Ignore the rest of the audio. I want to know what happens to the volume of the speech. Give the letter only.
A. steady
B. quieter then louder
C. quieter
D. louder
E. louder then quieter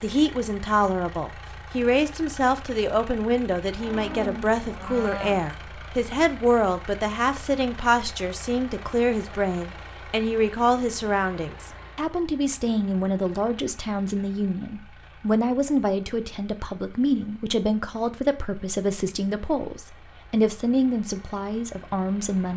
A.